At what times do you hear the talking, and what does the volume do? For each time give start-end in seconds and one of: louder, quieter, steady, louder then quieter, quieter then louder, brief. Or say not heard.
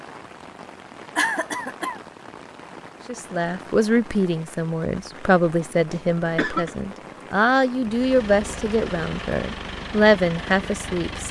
3.0-11.2 steady.